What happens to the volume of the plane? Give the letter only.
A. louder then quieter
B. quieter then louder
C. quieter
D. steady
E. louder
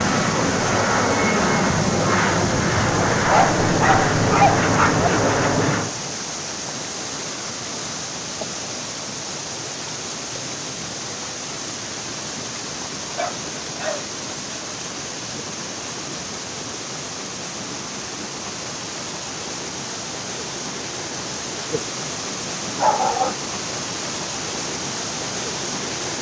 D.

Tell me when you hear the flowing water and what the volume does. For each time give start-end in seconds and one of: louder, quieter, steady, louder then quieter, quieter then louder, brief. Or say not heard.
0.0-26.1 steady.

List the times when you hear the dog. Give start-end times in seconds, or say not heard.
3.2-5.1, 13.2-14.1, 22.8-23.4.